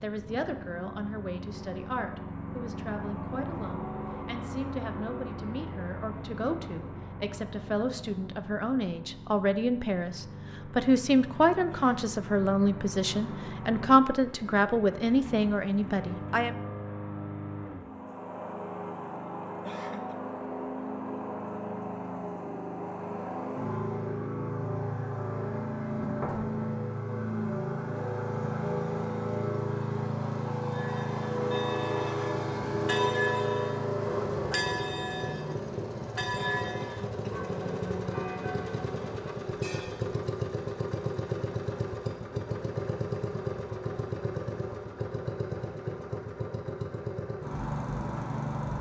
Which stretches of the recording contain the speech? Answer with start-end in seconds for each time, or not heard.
0.0-16.6.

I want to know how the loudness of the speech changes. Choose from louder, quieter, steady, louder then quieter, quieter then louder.
louder.